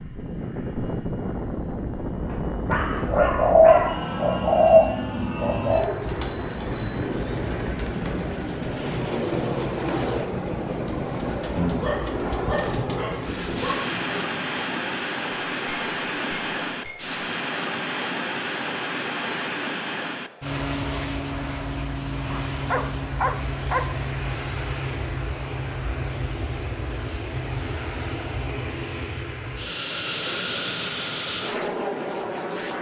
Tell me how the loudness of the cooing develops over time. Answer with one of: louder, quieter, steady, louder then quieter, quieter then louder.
quieter.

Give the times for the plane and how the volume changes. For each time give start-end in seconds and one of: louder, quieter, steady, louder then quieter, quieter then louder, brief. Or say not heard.
0.0-32.7 steady.